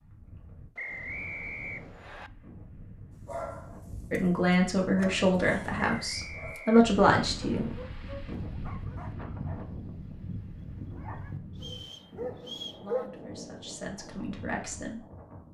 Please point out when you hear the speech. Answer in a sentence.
You can hear the speech from 4.1 to 7.7 s and from 12.8 to 15.0 s.